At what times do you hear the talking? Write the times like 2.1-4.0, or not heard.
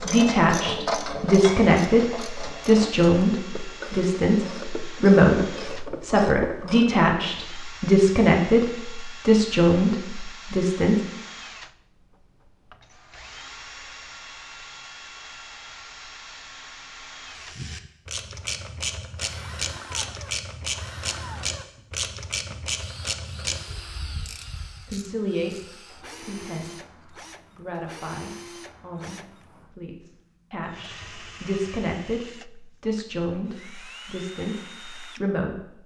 0.1-11.0, 24.9-25.6, 26.2-35.8.